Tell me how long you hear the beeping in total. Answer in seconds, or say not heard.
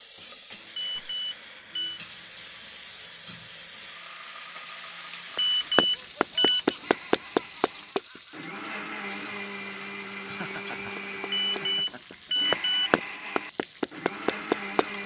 4 s.